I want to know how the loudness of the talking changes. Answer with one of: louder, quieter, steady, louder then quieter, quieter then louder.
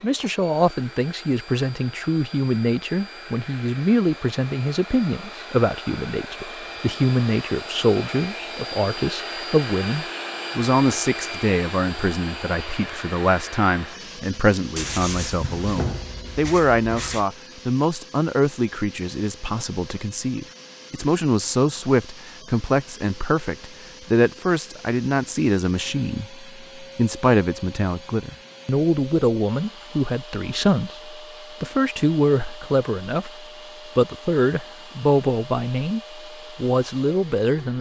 steady.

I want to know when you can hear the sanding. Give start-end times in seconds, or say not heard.
14.8-17.2.